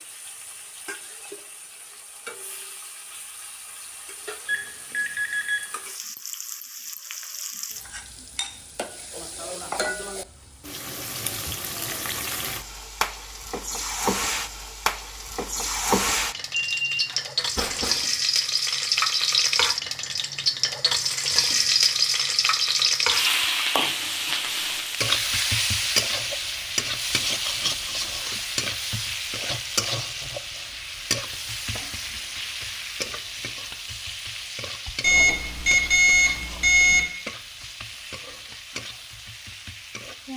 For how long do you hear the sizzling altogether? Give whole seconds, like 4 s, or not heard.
40 s.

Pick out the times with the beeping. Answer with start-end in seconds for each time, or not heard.
4.5-5.6, 16.8-17.9, 35.0-37.0.